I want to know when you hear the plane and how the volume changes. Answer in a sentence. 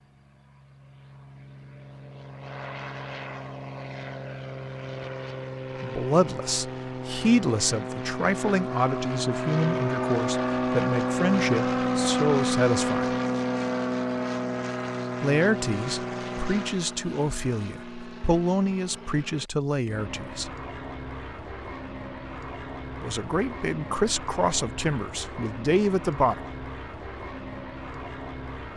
You can hear the plane from 0.0 to 28.7 s, getting louder then quieter.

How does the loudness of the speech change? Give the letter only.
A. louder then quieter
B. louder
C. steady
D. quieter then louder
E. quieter
C.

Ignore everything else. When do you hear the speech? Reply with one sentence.
The speech can be heard from 5.8 to 13.2 s, from 15.2 to 20.6 s and from 23.0 to 26.4 s.